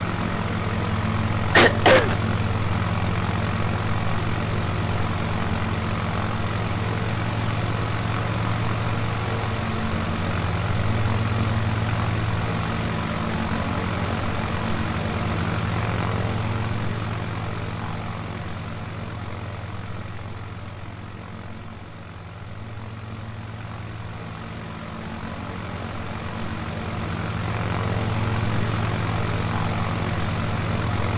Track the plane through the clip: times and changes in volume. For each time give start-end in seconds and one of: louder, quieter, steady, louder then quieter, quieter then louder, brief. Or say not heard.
0.0-31.1 quieter then louder.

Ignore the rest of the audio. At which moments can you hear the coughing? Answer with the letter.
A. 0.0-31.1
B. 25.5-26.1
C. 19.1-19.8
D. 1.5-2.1
D.